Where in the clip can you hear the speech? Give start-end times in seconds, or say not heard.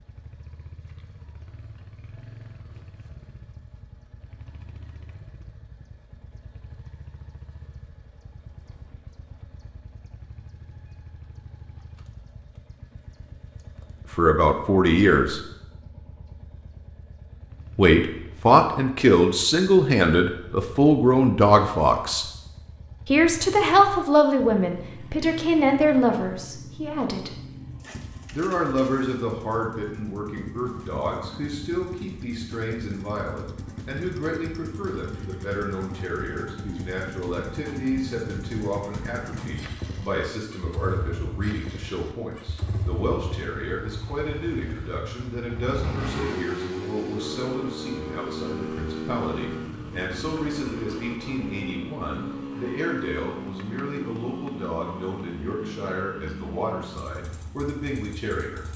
14.2-15.4, 17.8-22.2, 23.1-27.4, 28.3-58.6.